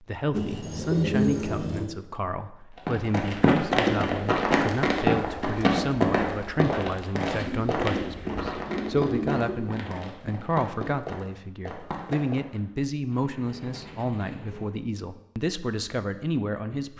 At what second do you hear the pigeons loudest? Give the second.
1 s.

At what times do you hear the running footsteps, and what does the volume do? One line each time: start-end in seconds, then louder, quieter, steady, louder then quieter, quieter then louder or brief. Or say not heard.
2.9-12.6 quieter.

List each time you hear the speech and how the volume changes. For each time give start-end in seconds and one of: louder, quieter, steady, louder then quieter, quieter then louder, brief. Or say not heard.
0.0-16.9 steady.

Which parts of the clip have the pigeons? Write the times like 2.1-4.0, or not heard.
0.3-1.9, 7.3-9.7, 13.1-14.7.